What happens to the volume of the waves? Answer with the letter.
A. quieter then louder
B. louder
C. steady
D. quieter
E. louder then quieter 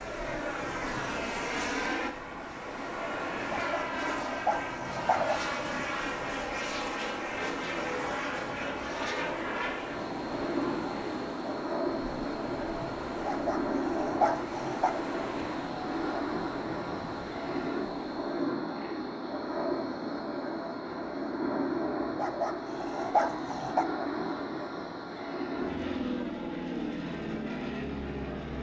C.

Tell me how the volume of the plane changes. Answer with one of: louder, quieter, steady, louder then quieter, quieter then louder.
steady.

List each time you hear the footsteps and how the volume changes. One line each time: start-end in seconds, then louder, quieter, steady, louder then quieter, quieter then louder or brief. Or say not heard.
not heard.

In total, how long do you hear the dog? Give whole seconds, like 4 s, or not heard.
5 s.